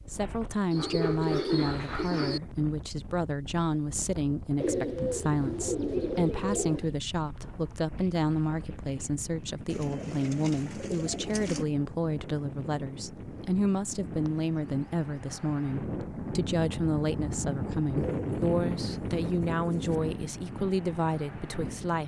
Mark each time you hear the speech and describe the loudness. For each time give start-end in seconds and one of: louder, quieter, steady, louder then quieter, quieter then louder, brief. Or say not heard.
0.1-22.0 steady.